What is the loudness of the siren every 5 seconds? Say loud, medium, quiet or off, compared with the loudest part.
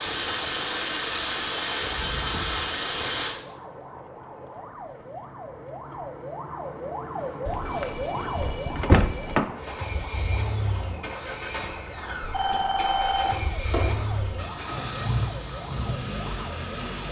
medium, loud, medium, medium.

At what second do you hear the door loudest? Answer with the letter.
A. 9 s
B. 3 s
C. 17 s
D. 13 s
A.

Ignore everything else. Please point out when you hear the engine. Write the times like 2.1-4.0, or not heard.
0.0-3.4, 9.6-17.0.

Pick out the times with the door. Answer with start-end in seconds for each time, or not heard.
7.5-9.4.